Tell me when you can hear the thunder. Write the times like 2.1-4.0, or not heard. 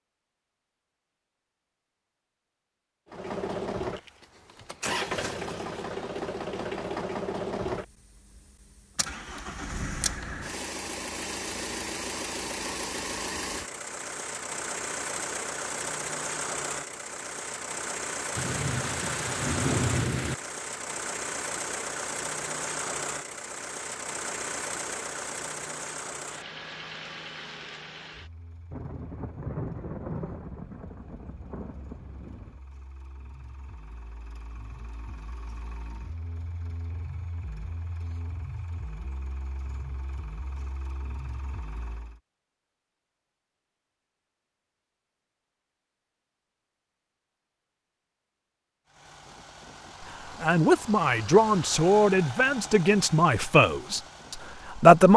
18.4-20.4, 28.7-32.6.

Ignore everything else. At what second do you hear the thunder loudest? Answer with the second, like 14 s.
20 s.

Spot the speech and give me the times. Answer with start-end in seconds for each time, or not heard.
50.4-55.1.